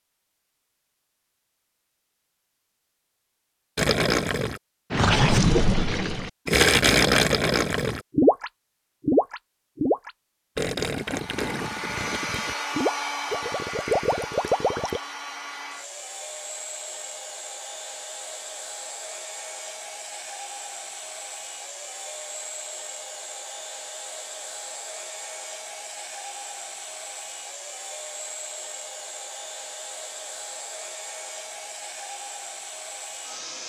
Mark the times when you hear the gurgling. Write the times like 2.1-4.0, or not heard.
3.8-15.0.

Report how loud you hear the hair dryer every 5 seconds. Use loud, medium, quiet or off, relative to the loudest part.
off, off, loud, medium, medium, medium, medium.